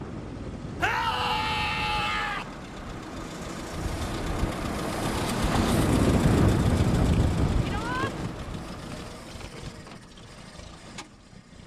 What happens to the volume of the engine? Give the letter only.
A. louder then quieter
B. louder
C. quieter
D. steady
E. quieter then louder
A.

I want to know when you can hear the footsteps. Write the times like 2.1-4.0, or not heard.
not heard.